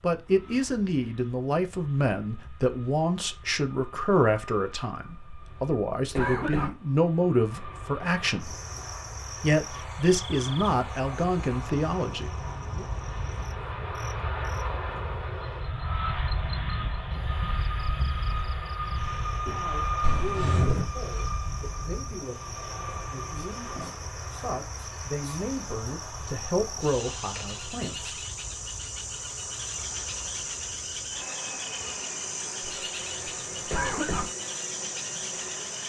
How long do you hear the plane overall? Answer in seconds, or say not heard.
36 s.